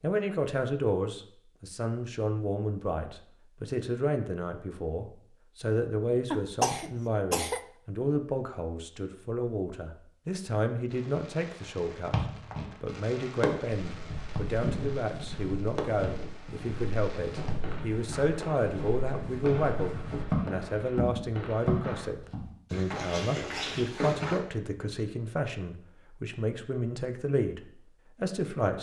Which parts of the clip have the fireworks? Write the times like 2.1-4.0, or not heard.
10.9-22.1.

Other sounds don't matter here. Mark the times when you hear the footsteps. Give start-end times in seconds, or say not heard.
13.8-24.4.